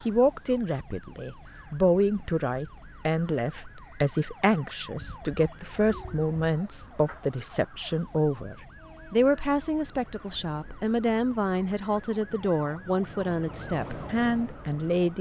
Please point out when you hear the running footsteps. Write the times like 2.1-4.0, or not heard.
not heard.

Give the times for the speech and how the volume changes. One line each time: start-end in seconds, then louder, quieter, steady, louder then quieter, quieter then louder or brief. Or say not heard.
0.1-15.1 steady.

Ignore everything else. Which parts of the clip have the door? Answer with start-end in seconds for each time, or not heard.
not heard.